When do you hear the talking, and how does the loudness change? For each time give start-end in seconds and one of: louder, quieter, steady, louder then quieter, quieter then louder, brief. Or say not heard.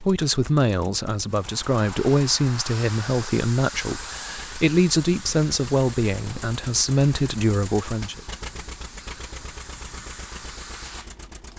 0.0-8.2 steady.